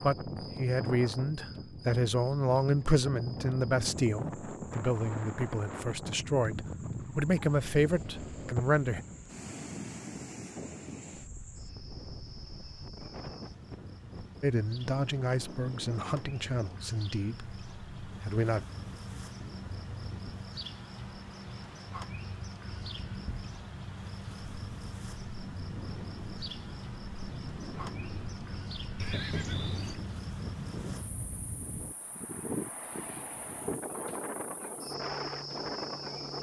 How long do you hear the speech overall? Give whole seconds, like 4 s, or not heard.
13 s.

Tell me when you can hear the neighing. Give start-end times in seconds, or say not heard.
28.9-30.0.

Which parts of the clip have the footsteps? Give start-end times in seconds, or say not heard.
not heard.